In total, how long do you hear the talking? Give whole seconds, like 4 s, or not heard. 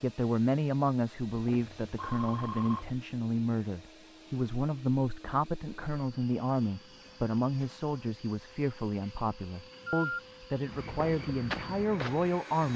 13 s.